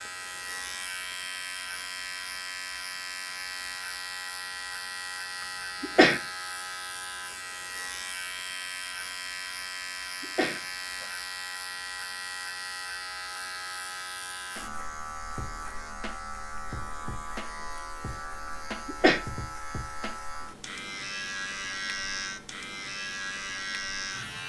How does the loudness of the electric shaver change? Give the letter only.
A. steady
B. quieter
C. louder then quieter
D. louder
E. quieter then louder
A.